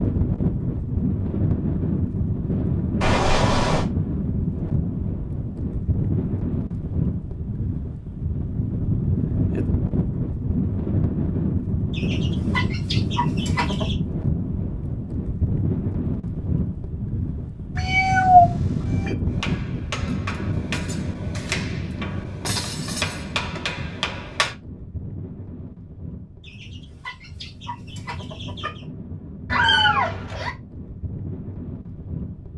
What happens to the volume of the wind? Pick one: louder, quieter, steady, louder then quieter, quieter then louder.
quieter.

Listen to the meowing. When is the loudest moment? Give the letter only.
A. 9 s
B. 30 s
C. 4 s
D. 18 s
D.